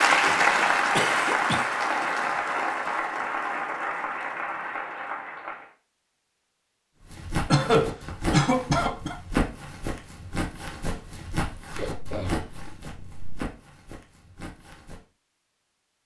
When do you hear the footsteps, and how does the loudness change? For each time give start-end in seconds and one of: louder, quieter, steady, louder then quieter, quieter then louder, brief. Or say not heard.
7.0-15.0 quieter.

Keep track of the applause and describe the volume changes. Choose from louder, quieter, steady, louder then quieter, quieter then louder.
quieter.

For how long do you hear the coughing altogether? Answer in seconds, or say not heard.
4 s.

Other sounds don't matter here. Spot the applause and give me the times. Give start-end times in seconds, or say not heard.
0.0-5.7.